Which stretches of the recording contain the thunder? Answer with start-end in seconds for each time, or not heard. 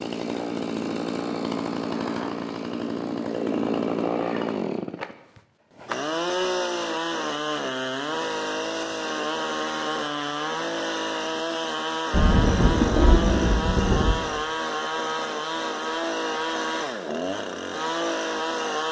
12.1-14.2.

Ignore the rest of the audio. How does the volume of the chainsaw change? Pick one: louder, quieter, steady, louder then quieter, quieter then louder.
steady.